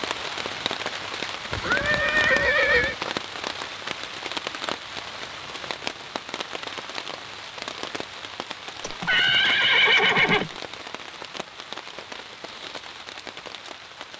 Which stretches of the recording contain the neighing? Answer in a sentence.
The neighing can be heard from 1.5 to 3.0 s and from 8.8 to 10.5 s.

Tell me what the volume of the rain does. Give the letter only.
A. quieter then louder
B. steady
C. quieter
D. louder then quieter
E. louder
C.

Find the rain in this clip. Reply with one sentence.
You can hear the rain from 0.0 to 14.1 s.